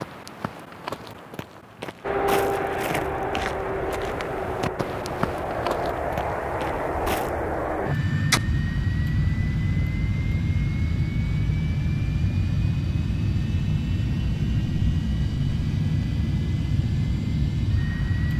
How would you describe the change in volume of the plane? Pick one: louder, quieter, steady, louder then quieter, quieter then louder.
steady.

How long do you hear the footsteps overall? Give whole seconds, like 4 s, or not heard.
7 s.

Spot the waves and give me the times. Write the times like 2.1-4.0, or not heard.
not heard.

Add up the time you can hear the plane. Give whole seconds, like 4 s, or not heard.
16 s.